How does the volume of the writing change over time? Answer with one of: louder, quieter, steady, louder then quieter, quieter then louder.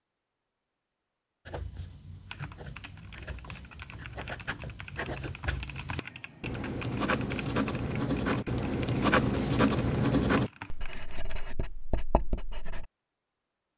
louder then quieter.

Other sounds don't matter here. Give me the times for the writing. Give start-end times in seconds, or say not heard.
1.4-12.8.